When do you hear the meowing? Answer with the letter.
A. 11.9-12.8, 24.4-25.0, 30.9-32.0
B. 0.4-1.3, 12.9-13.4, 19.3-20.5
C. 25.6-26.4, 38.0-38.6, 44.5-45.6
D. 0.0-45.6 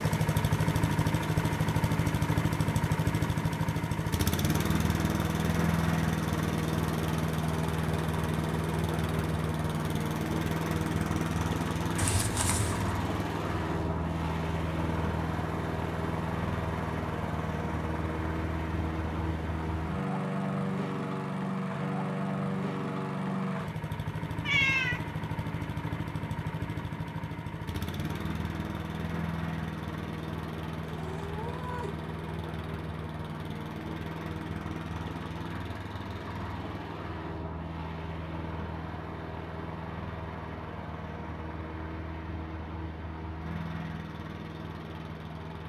A.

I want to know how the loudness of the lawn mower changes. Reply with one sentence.
The loudness of the lawn mower goes down.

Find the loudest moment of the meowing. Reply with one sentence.
The loudest moment of the meowing is at 25 seconds.